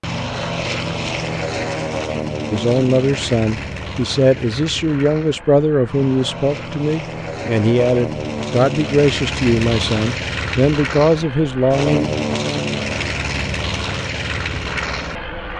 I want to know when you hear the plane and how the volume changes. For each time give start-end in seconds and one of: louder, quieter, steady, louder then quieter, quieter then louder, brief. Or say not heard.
0.0-15.5 quieter then louder.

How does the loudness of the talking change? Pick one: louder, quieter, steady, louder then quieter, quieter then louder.
steady.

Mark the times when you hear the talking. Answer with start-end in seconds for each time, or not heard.
2.5-12.1.